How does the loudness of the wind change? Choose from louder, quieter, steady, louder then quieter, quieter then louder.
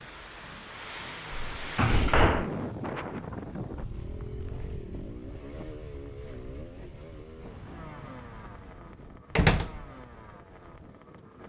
quieter.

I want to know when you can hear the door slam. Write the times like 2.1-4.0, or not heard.
1.6-2.5, 9.3-9.8.